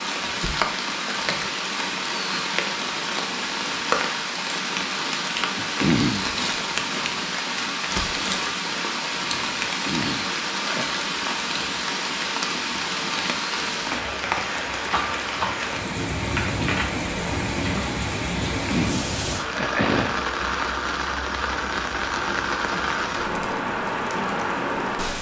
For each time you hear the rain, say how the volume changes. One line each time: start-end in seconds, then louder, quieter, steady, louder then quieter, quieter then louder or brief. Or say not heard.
0.0-25.1 steady.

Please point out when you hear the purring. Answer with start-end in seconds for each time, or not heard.
not heard.